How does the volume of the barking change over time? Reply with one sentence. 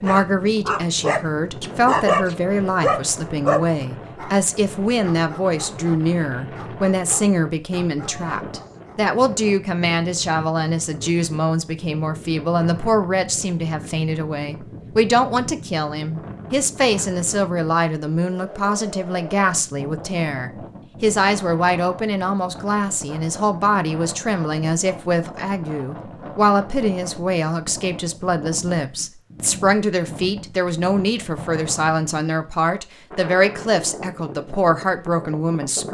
The volume of the barking goes down.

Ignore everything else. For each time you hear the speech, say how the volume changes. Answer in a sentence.
You can hear the speech from 0.0 to 35.8 s, at a steady volume.